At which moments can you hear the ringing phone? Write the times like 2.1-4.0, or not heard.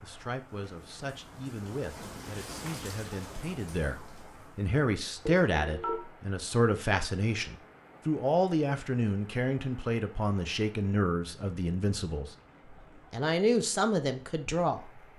5.2-6.0.